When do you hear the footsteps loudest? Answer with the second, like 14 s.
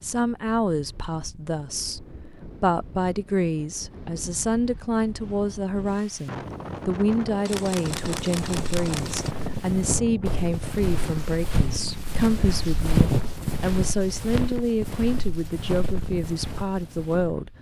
13 s.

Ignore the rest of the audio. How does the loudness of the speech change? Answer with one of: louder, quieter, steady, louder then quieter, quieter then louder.
steady.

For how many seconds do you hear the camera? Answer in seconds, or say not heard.
2 s.